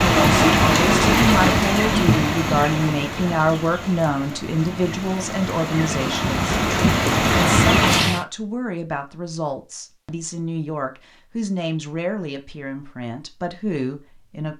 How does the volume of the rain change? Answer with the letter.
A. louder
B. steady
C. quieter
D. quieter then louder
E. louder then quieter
D.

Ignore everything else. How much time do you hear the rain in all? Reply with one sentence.
You can hear the rain for 8 seconds altogether.